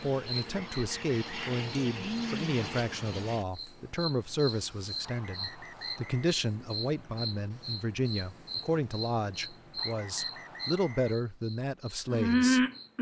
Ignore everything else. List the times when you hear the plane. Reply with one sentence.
The plane can be heard from 0.0 to 3.5 s.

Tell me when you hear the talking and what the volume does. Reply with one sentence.
You can hear the talking from 0.0 to 12.7 s, at a steady volume.